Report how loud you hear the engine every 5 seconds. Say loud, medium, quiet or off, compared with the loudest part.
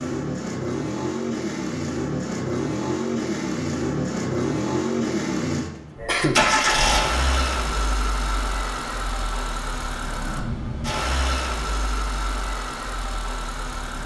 loud, loud, medium.